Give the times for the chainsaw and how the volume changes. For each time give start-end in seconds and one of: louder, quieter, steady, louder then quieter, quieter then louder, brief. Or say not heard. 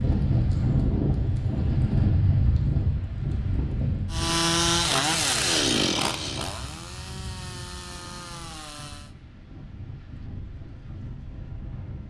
4.1-9.2 quieter.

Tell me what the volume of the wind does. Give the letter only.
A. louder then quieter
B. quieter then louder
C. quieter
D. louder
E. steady
C.